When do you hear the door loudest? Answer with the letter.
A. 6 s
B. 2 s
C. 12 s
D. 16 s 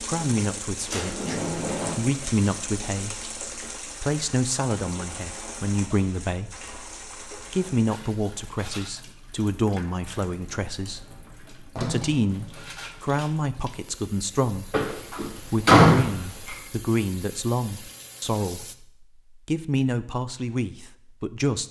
D.